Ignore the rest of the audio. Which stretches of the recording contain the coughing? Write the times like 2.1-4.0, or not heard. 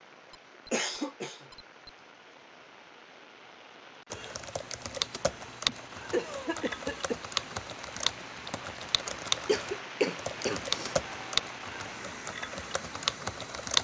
0.3-1.9, 5.7-7.2, 9.4-10.9.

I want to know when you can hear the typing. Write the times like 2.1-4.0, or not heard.
4.1-13.7.